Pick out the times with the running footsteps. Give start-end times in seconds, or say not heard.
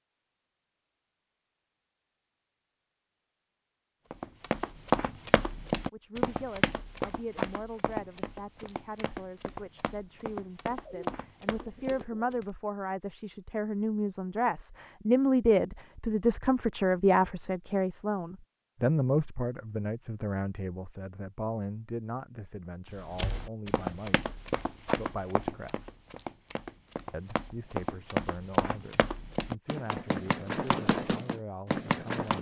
4.1-12.4, 22.9-32.3.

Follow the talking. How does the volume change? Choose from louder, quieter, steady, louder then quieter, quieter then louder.
louder then quieter.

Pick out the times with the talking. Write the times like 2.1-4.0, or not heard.
5.9-25.9, 27.1-32.3.